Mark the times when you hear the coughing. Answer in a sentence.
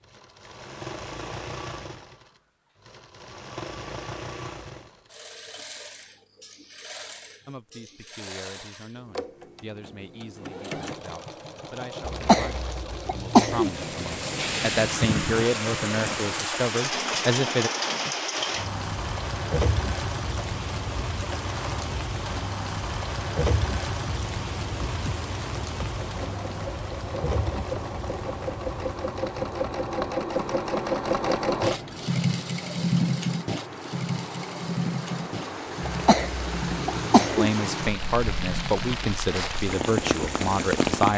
You can hear the coughing from 12.1 to 13.7 s and from 35.9 to 37.5 s.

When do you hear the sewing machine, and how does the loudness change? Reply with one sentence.
The sewing machine can be heard from 0.0 to 41.1 s, getting louder.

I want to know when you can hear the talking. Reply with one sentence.
You can hear the talking from 7.5 to 17.7 s and from 37.4 to 41.1 s.